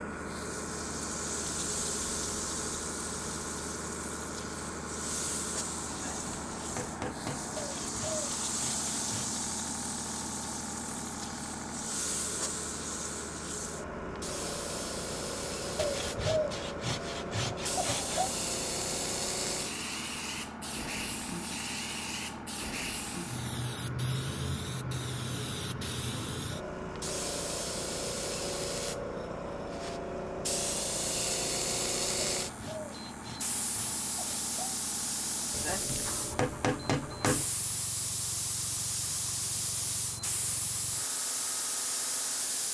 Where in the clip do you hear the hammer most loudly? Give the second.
37 s.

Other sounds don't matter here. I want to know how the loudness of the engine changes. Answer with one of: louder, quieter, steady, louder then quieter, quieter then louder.
quieter.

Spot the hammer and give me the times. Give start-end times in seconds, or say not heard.
5.9-7.5, 35.5-37.5.